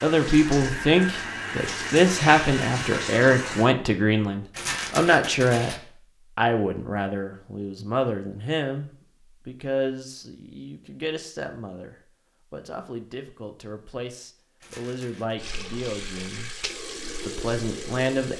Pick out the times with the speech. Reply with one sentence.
The speech can be heard from 0.0 to 5.8 s, from 6.3 to 16.6 s and from 17.2 to 18.3 s.